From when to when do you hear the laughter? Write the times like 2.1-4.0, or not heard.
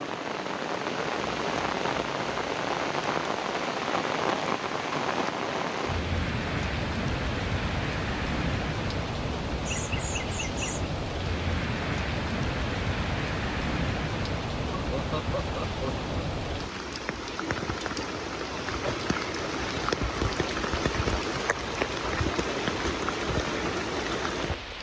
9.7-10.9, 14.7-16.2.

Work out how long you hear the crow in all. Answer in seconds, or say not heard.
not heard.